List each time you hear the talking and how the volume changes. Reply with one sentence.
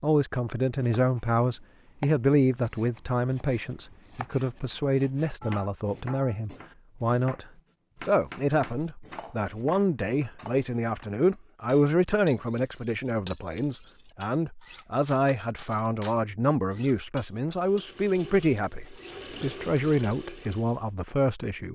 The talking can be heard from 0.0 to 21.6 s, at a steady volume.